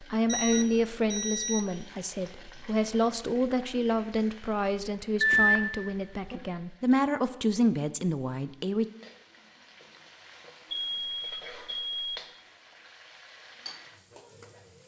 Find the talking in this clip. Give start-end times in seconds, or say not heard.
0.0-8.8.